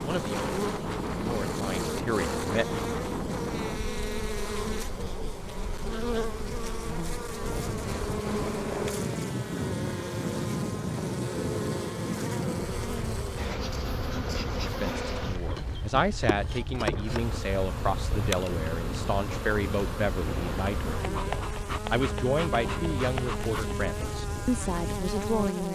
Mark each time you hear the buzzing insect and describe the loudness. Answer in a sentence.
You can hear the buzzing insect from 0.0 to 25.7 s, at a steady volume.